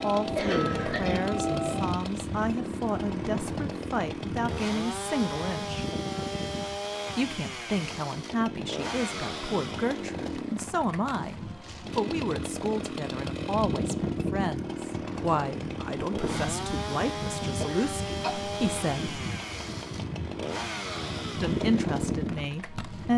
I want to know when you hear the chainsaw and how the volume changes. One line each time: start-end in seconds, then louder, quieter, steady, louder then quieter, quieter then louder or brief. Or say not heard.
0.0-23.1 steady.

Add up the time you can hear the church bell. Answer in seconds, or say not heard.
2 s.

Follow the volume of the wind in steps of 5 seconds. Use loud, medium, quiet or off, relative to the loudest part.
loud, medium, loud, loud, loud.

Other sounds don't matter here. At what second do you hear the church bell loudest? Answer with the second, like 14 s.
2 s.